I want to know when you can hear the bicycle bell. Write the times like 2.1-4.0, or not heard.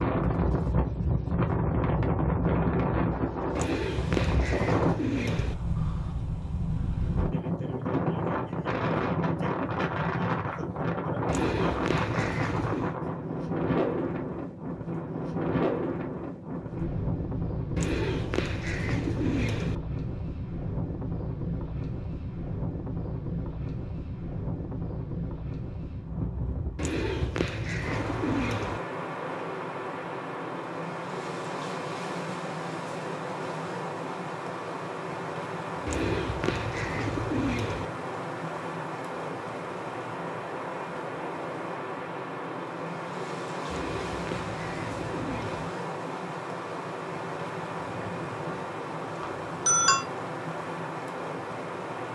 49.2-50.0.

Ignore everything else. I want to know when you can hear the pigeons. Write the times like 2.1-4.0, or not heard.
3.5-5.5, 11.2-12.9, 17.8-19.8, 26.8-28.8, 35.9-37.9, 43.6-45.6.